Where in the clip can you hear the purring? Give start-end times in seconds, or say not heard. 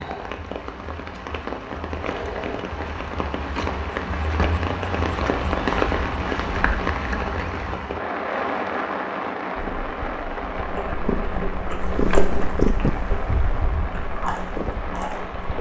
9.6-15.5.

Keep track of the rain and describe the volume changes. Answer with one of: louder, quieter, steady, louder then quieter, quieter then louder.
louder then quieter.